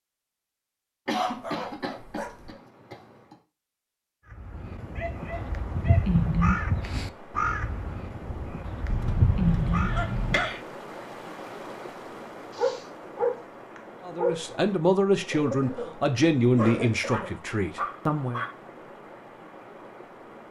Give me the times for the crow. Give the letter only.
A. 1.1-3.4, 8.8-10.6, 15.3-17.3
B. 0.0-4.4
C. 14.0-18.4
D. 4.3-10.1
D.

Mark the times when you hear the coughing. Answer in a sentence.
You can hear the coughing from 1.1 to 3.4 s, from 8.8 to 10.6 s and from 15.3 to 17.3 s.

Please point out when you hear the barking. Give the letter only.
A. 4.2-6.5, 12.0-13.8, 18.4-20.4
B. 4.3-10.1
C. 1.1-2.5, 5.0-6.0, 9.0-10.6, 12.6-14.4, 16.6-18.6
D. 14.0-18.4
C.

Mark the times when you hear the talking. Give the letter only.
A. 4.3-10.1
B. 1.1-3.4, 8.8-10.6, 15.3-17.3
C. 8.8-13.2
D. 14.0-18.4
D.